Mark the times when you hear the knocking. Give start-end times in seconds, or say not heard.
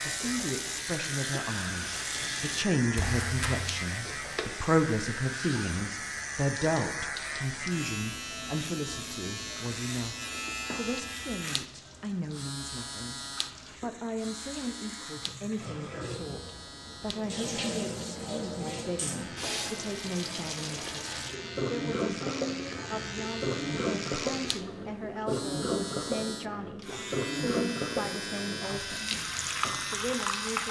3.0-3.8.